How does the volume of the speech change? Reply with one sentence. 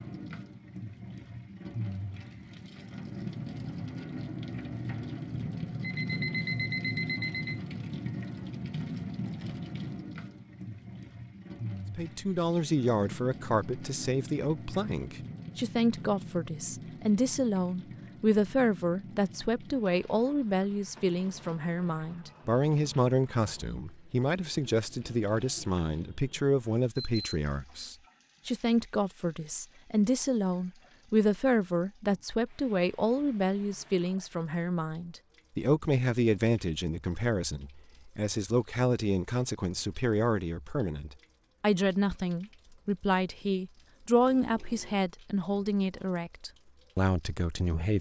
The loudness of the speech stays about the same.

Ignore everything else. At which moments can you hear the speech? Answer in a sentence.
The speech can be heard from 11.9 to 47.9 s.